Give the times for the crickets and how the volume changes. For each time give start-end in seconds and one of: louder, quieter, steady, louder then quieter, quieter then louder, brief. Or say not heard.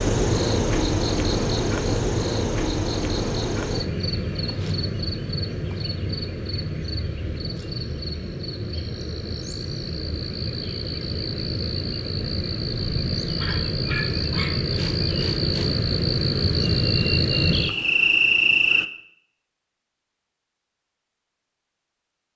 0.0-18.9 quieter then louder.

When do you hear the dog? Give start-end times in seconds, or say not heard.
13.3-14.6.